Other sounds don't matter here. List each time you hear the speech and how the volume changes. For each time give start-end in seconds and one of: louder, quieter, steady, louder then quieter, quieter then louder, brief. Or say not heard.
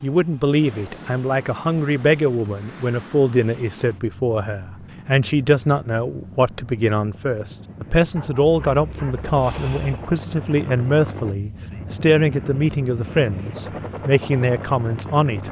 0.0-15.4 steady.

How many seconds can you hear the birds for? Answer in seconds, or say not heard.
not heard.